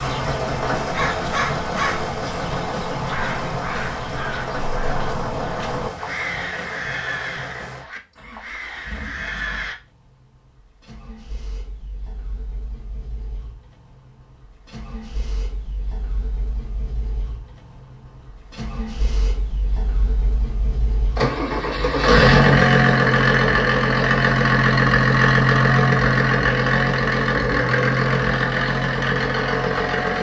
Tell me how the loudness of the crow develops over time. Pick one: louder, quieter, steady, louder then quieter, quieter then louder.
quieter.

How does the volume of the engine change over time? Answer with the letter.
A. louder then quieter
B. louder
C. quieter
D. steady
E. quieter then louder
E.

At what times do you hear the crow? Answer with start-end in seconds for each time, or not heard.
0.0-9.8.